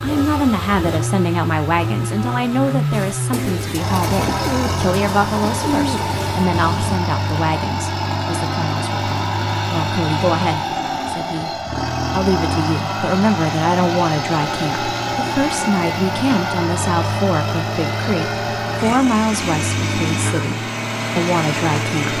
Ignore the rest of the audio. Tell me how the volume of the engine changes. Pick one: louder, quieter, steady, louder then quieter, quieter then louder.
steady.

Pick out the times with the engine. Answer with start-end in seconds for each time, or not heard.
0.0-22.1.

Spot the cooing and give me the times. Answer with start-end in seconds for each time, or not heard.
2.9-7.0.